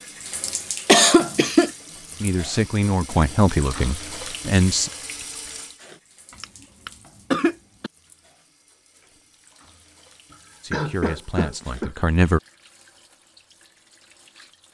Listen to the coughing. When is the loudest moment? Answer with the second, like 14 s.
1 s.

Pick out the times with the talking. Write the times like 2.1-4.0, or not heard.
2.2-4.9, 10.6-12.4.